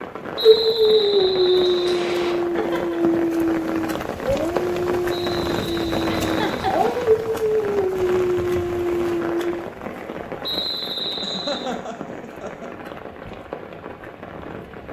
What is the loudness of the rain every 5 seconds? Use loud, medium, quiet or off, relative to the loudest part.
loud, loud, medium.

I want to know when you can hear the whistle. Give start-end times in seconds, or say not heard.
0.3-2.4, 5.0-7.0, 10.4-11.7.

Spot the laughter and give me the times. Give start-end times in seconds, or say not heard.
2.5-3.1, 6.2-6.8, 11.2-12.7.